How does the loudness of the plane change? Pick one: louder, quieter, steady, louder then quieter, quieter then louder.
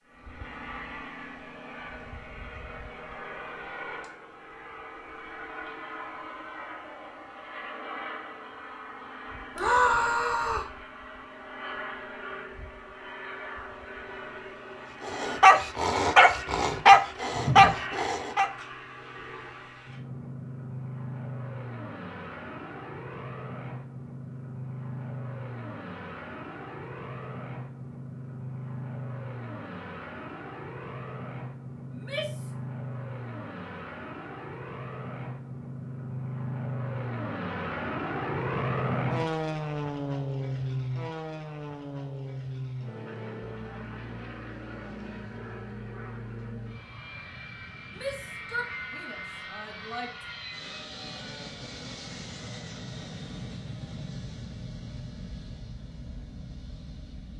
louder then quieter.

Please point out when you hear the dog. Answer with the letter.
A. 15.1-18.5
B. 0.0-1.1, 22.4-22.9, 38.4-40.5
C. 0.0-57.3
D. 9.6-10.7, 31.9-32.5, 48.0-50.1
A.